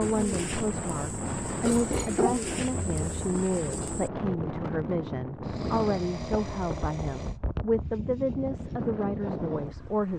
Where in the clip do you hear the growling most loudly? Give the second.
2 s.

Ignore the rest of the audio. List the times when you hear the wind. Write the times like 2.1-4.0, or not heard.
0.0-10.1.